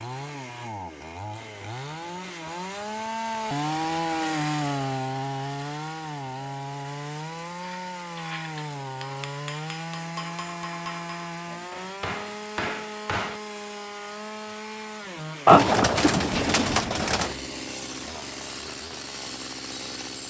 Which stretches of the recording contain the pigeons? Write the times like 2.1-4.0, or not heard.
15.4-17.4.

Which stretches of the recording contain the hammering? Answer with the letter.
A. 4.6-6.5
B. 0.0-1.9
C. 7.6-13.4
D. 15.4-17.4
C.